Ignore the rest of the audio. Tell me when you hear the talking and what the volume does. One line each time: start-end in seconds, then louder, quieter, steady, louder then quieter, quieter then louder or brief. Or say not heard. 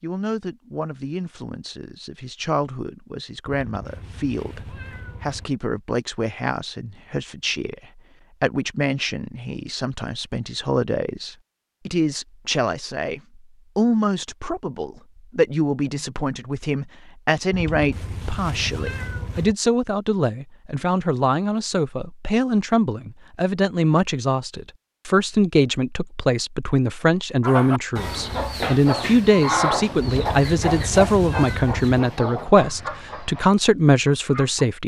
0.0-34.8 louder.